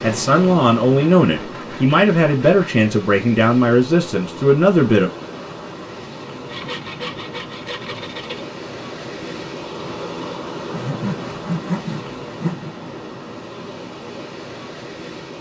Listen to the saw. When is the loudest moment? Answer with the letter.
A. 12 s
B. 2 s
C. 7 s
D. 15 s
A.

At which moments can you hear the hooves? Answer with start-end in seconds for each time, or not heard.
not heard.